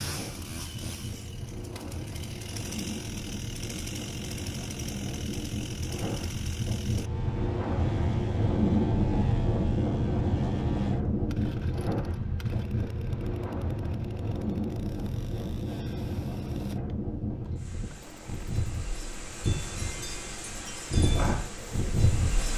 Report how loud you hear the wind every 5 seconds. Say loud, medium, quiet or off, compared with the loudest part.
medium, loud, loud, medium, loud.